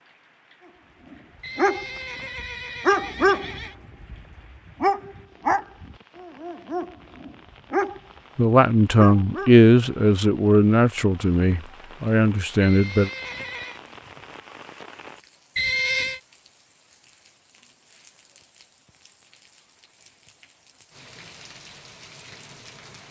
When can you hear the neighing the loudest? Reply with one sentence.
The volume of the neighing peaks at 16 seconds.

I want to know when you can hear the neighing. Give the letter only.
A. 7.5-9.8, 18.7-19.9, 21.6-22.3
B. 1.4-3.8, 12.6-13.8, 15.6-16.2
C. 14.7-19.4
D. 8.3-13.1
B.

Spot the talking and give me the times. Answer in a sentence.
The talking can be heard from 8.3 to 13.1 s.